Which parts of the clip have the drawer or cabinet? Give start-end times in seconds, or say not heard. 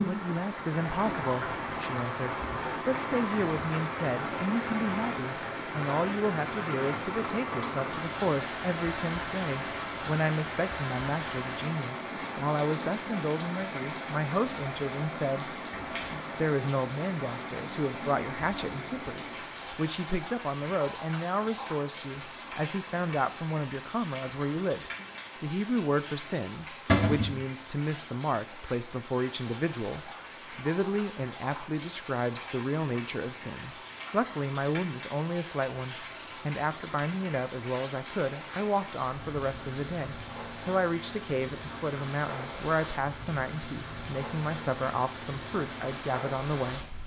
26.9-27.4.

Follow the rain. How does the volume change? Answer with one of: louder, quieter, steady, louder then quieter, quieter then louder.
quieter.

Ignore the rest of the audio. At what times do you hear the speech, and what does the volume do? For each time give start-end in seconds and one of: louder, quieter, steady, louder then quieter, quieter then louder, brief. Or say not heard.
0.1-46.9 steady.